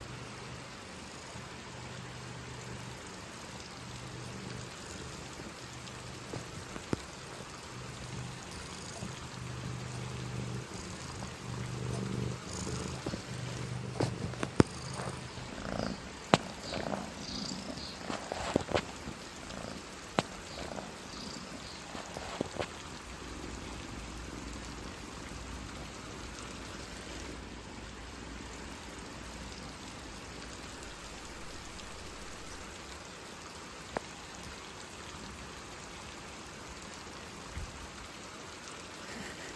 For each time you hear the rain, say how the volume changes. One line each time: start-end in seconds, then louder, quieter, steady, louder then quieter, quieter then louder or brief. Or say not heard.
0.0-39.5 steady.